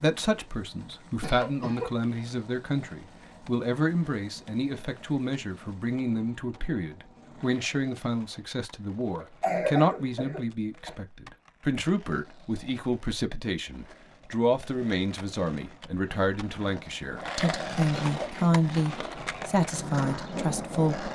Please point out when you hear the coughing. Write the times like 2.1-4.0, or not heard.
0.8-2.1, 9.2-10.9, 17.9-18.6.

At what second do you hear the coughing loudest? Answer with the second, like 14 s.
10 s.